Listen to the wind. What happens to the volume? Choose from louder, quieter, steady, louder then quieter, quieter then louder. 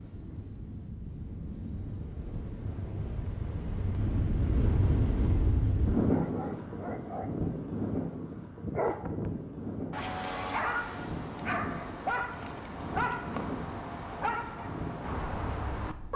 louder then quieter.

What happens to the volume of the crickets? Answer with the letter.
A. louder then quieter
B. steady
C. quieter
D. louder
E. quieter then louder
C.